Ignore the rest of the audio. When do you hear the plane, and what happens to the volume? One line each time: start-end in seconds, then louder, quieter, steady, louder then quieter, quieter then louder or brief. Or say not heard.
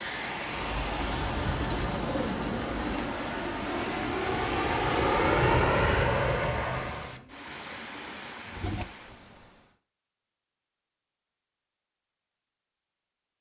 0.0-7.2 louder.